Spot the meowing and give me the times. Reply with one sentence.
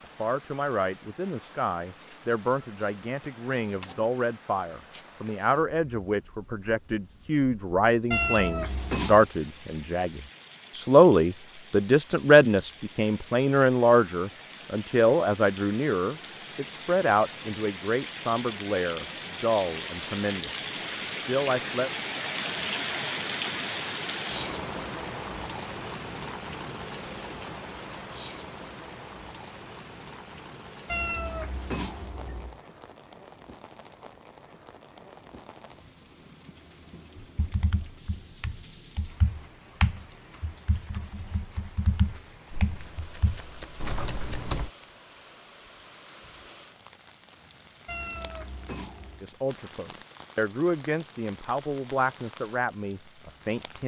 You can hear the meowing from 8.1 to 9.3 s, from 30.9 to 32.6 s and from 47.9 to 49.3 s.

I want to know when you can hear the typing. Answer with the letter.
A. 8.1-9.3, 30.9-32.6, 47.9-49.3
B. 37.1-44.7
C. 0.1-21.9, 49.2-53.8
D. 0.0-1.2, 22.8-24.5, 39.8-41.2
B.